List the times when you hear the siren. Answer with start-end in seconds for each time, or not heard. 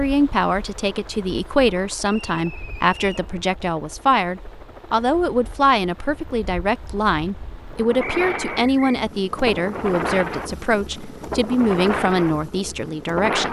not heard.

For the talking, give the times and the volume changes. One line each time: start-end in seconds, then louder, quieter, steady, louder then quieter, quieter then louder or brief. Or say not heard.
0.0-13.4 steady.